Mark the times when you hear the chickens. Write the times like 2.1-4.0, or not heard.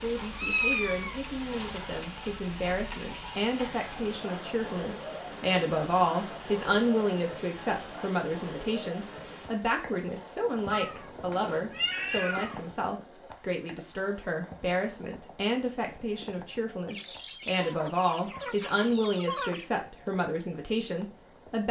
16.9-19.7.